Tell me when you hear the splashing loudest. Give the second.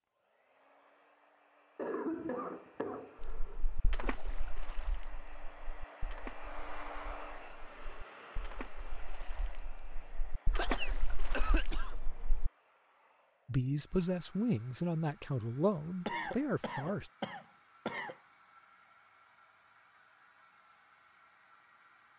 11 s.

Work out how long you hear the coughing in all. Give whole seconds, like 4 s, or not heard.
6 s.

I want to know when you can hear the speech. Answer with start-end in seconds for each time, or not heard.
13.4-17.1.